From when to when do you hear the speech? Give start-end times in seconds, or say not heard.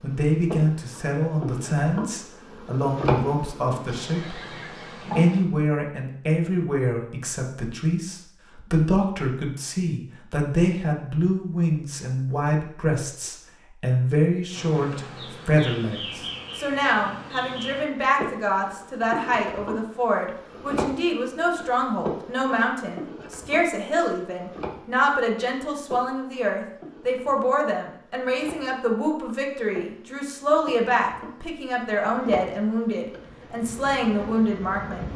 0.0-4.5, 5.2-35.1.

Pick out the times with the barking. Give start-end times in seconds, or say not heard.
not heard.